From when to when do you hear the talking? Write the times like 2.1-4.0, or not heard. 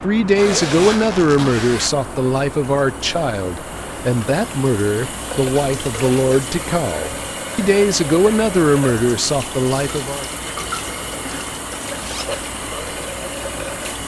0.0-10.2.